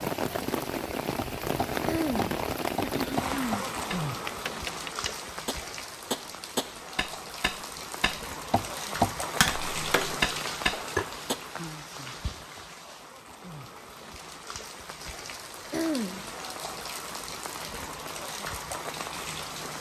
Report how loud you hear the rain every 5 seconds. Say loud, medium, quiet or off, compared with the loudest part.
loud, medium, medium, medium.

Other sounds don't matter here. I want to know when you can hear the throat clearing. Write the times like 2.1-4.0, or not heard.
1.9-3.7, 15.7-16.3.